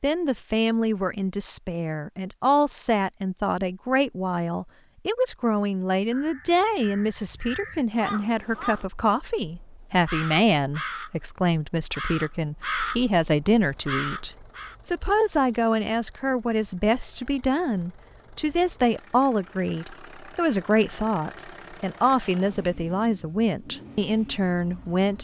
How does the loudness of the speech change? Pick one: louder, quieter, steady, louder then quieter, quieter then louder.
steady.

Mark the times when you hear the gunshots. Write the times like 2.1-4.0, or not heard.
not heard.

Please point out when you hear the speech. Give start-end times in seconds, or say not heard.
0.0-25.1.